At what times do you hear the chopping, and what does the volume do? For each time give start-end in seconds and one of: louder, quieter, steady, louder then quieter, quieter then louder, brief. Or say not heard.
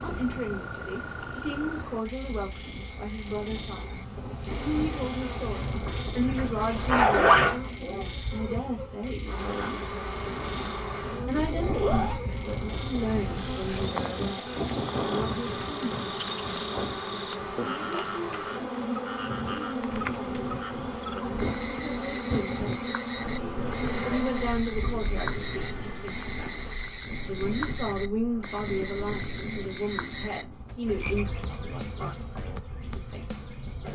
not heard.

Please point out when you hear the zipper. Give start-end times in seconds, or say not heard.
6.3-7.6, 11.4-12.2, 23.6-24.3.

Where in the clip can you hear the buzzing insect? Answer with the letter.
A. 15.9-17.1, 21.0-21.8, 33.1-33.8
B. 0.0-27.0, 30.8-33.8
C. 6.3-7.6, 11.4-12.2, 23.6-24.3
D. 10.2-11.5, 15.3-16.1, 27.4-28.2
B.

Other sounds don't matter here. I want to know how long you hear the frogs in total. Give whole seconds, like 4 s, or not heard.
34 s.